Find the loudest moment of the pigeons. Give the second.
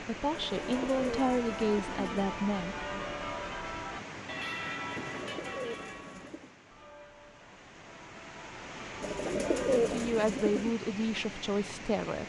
10 s.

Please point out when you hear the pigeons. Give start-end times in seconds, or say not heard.
0.3-2.3, 5.0-6.5, 9.0-10.8.